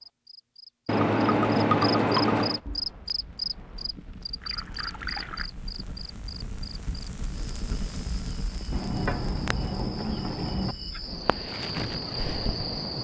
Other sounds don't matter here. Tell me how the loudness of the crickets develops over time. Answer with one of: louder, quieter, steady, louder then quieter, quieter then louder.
quieter then louder.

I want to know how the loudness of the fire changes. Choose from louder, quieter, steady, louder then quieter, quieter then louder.
louder.